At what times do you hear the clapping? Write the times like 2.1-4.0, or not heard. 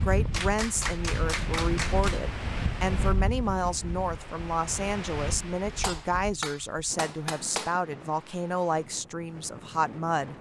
0.3-2.2, 5.8-7.8.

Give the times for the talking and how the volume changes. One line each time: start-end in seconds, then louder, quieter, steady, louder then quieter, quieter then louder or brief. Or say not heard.
0.0-10.3 steady.